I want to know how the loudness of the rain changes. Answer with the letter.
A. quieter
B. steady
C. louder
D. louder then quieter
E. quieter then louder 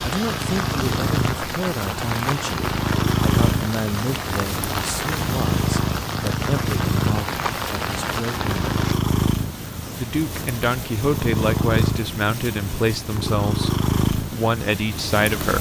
B.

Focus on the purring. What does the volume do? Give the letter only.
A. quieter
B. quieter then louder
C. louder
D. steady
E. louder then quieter
D.